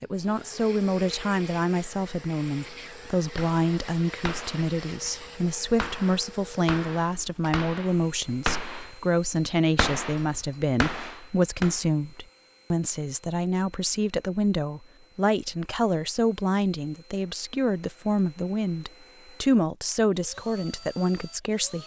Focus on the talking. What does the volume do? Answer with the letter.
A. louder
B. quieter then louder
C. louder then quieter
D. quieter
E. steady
E.